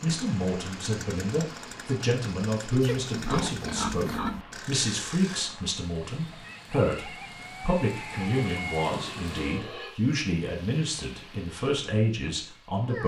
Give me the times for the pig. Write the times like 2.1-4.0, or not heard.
2.8-4.5, 8.2-10.0.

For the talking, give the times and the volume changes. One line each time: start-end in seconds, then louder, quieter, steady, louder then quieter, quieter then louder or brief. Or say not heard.
0.0-13.0 steady.